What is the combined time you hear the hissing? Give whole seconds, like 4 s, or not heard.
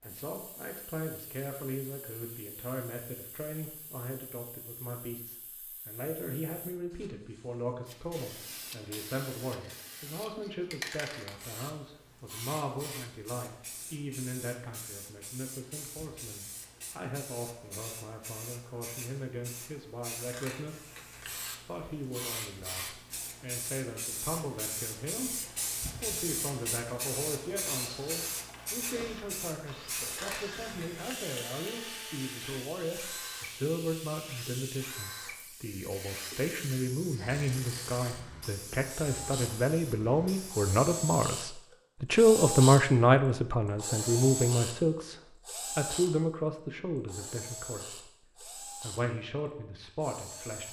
41 s.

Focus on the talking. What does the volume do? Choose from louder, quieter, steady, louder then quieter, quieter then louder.
louder.